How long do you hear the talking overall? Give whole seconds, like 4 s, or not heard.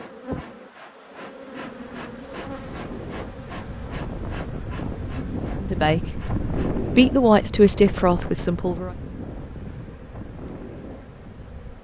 3 s.